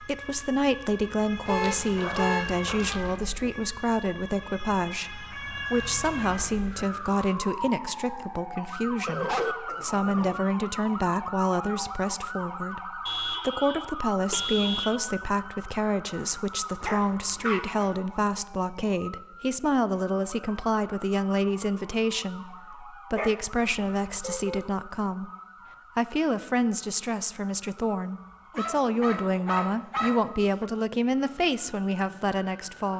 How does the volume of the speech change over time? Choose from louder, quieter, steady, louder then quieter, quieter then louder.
steady.